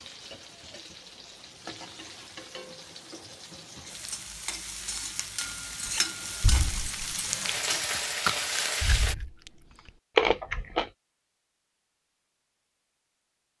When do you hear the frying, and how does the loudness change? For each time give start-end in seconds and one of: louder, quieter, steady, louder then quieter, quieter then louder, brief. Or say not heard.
0.0-9.2 louder.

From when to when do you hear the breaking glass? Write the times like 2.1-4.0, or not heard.
not heard.